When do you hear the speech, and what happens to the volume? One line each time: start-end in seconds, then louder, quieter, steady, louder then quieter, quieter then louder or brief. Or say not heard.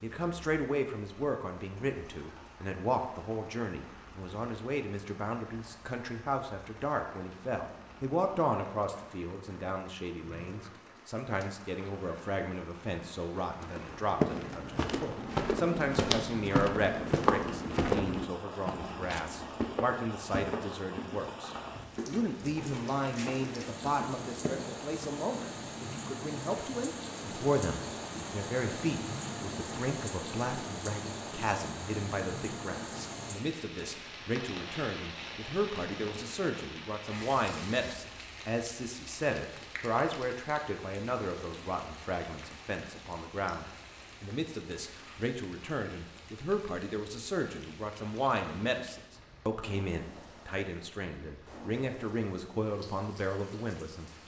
0.0-54.1 steady.